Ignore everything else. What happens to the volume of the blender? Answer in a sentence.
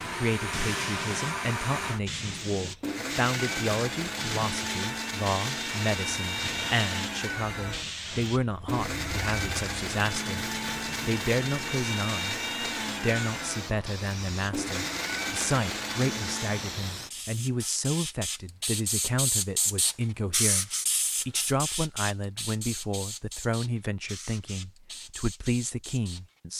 The loudness of the blender stays about the same.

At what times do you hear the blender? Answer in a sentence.
The blender can be heard from 0.0 to 16.9 s.